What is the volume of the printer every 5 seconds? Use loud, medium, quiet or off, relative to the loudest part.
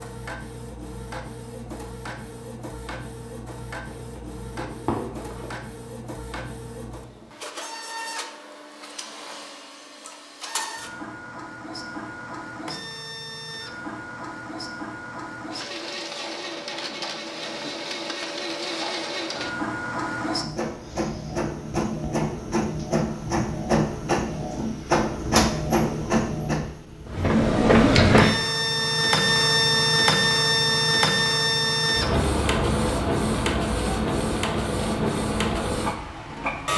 quiet, quiet, quiet, medium, medium, loud, loud, medium.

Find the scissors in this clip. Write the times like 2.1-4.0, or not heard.
3.9-5.5.